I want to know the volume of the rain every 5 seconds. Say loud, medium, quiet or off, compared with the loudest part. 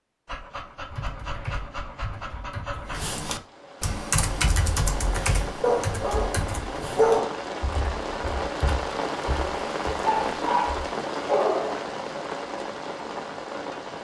medium, loud, loud.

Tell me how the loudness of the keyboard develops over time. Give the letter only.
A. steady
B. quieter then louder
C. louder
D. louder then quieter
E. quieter
D.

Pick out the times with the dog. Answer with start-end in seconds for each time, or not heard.
0.2-3.0, 5.6-7.4, 10.0-11.8.